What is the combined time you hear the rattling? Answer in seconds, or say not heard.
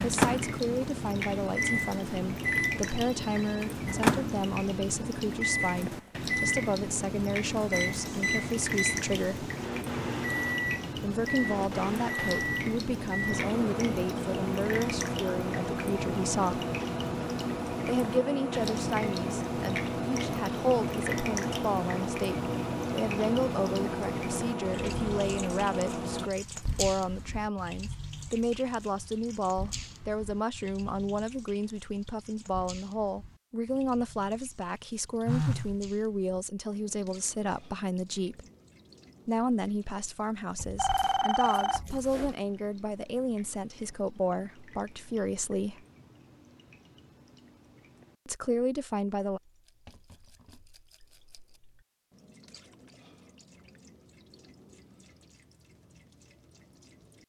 2 s.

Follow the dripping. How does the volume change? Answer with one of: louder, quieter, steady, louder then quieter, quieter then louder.
quieter.